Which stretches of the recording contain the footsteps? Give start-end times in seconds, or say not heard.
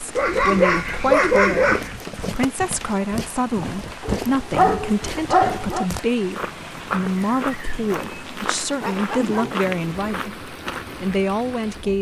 1.6-11.2.